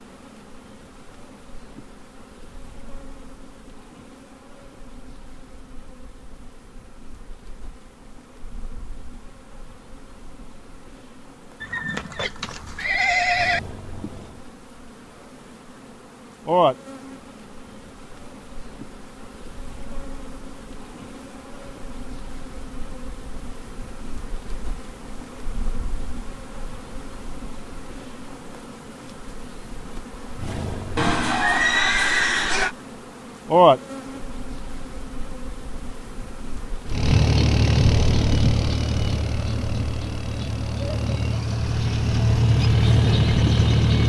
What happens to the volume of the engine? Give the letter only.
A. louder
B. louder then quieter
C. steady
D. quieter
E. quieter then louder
E.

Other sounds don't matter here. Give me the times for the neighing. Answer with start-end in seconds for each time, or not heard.
11.6-13.6, 30.9-32.8.